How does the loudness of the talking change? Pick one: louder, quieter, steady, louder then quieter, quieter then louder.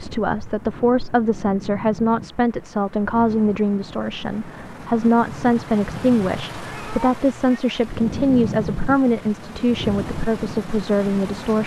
steady.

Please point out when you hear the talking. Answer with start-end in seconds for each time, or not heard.
0.0-11.6.